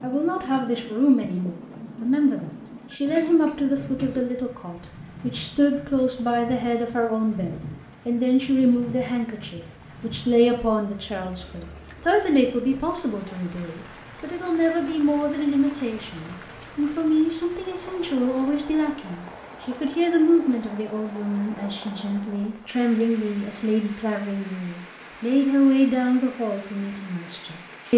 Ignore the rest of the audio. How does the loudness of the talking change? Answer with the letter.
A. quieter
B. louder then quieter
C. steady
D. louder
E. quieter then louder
C.